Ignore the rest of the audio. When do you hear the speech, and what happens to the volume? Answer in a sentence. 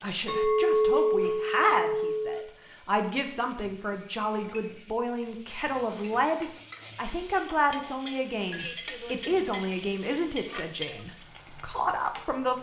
You can hear the speech from 0.0 to 12.5 s, at a steady volume.